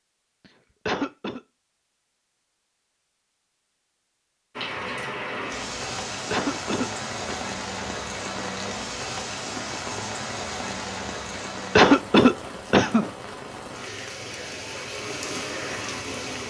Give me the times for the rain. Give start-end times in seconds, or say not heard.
4.5-16.4.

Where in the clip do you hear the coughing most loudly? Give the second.
12 s.